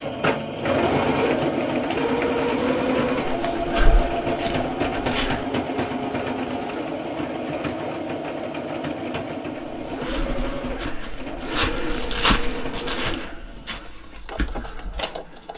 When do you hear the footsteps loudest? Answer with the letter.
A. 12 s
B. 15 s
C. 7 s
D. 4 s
A.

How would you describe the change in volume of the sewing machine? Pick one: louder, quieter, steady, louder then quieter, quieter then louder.
quieter.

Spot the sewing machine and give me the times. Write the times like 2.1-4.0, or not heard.
0.0-15.5.